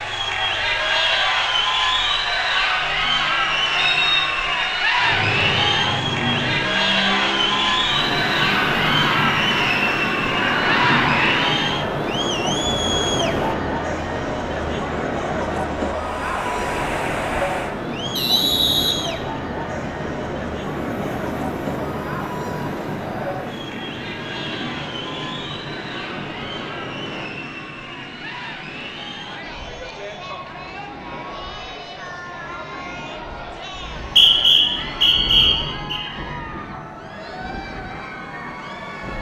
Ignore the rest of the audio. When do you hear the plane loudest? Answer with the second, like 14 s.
11 s.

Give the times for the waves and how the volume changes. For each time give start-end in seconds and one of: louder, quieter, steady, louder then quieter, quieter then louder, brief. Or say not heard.
7.8-39.1 quieter.